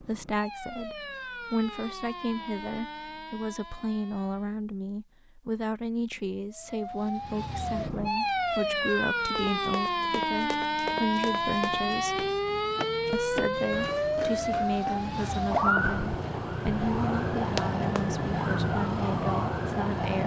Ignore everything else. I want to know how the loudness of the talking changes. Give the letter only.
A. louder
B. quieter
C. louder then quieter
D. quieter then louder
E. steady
E.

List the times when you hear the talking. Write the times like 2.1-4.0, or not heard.
0.0-12.2, 13.1-20.2.